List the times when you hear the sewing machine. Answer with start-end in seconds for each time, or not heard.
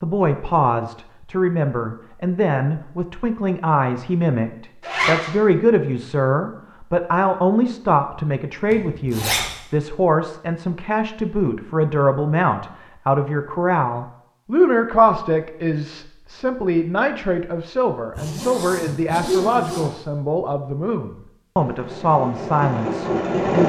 21.6-23.6.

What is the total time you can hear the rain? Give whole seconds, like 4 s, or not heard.
not heard.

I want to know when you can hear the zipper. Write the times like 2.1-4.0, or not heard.
4.8-5.3, 8.7-9.5, 18.1-19.9.